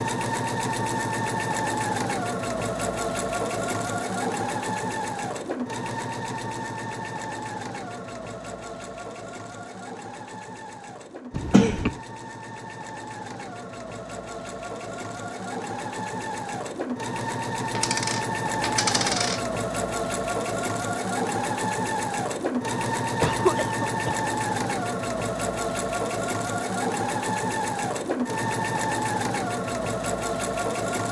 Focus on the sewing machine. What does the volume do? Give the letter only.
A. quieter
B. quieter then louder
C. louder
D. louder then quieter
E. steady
B.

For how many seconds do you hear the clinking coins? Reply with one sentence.
You can hear the clinking coins for 2 seconds altogether.